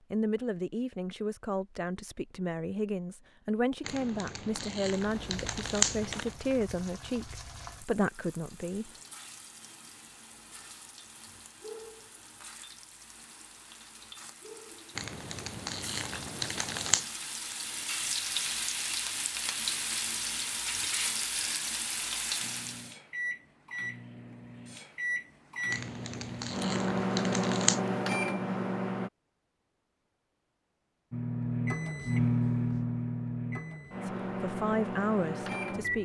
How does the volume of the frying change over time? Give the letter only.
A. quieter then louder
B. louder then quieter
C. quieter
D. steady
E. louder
E.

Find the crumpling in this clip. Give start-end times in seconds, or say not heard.
3.9-6.3, 14.9-17.1, 25.7-27.8.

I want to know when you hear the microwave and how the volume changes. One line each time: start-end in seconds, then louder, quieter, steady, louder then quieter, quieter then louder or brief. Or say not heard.
22.4-29.1 louder
31.1-35.9 quieter.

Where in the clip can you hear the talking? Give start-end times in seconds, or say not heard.
0.1-8.9, 34.0-35.9.